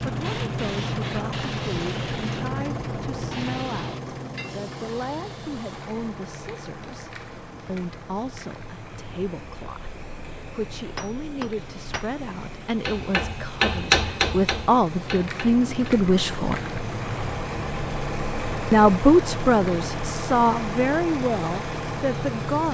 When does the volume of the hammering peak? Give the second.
14 s.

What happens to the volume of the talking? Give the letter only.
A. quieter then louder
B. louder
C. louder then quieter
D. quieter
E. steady
B.